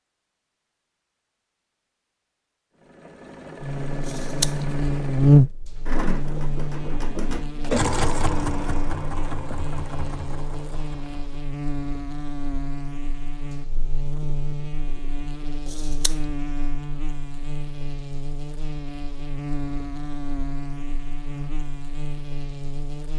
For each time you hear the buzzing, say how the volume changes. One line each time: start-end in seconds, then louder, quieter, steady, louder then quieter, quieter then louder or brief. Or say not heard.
3.6-23.1 quieter.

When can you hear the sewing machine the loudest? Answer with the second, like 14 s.
8 s.